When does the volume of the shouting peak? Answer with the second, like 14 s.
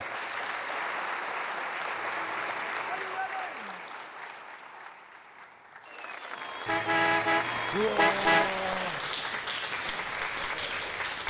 8 s.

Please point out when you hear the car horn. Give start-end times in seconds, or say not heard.
1.9-2.9, 6.7-8.5.